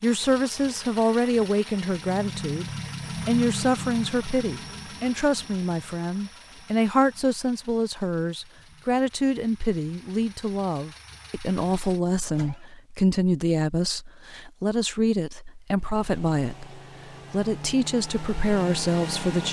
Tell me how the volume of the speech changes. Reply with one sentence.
The loudness of the speech stays about the same.